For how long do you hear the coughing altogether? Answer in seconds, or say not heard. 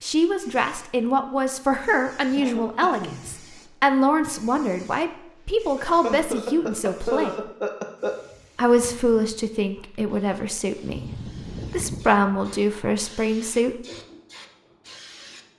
5 s.